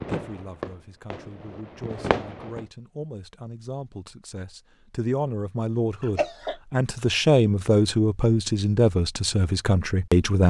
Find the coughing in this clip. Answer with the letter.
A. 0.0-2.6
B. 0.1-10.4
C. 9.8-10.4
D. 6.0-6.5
D.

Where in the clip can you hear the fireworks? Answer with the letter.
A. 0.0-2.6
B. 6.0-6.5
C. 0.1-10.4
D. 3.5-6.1
A.